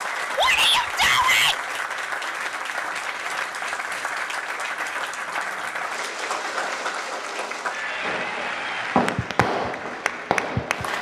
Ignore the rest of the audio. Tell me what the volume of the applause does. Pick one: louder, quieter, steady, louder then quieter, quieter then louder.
steady.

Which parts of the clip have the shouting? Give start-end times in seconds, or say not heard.
0.3-1.6.